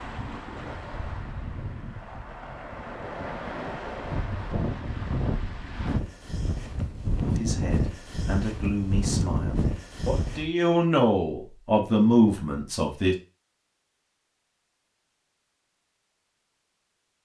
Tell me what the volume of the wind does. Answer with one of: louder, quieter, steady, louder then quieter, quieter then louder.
louder.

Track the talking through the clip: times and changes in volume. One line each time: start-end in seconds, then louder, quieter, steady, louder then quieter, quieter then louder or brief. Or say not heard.
7.2-13.2 louder.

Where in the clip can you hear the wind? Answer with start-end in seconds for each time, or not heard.
0.0-10.5.